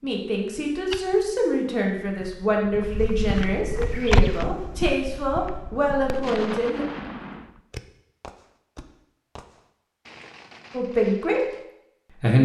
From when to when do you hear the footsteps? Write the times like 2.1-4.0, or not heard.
0.0-6.2.